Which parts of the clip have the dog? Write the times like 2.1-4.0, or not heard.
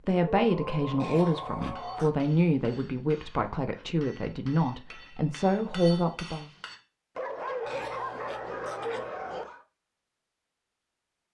0.3-2.1, 7.2-9.7.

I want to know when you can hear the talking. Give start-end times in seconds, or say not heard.
0.1-6.5.